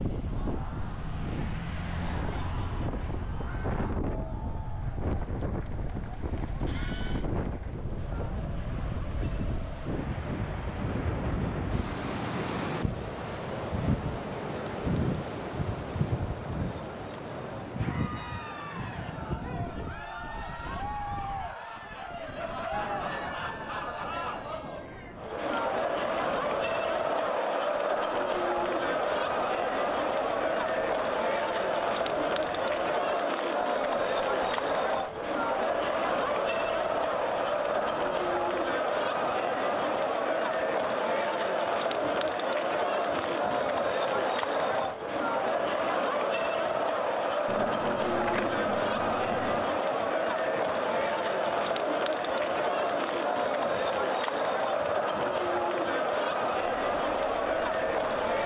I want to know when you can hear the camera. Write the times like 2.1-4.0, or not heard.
6.7-7.2, 25.4-26.2, 47.5-49.8.